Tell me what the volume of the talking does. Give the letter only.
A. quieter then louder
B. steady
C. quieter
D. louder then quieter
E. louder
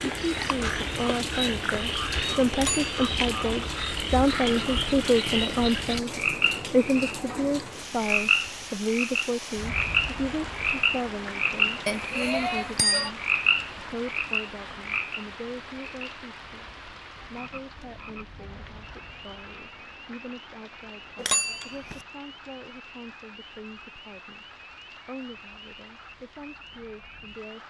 C.